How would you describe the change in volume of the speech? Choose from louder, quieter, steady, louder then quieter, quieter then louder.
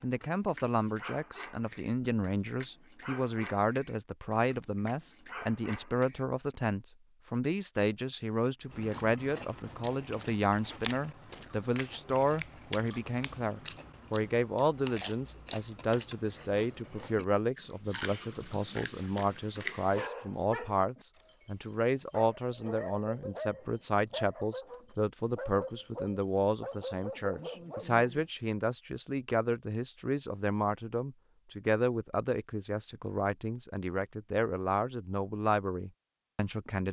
steady.